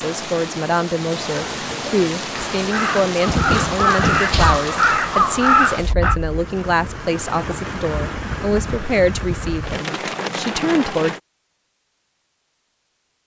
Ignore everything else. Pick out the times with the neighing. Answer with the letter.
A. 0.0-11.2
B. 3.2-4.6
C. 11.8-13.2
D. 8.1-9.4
B.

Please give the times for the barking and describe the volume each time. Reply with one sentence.
The barking can't be heard in this clip.